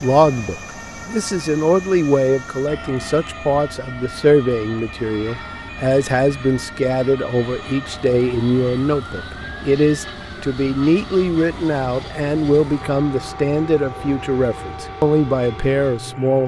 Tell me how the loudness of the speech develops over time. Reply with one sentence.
The volume of the speech stays about the same.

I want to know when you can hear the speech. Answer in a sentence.
The speech can be heard from 0.0 to 16.4 s.